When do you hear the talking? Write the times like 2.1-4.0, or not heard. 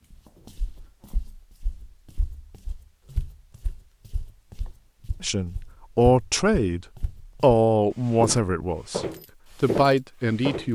5.2-10.6.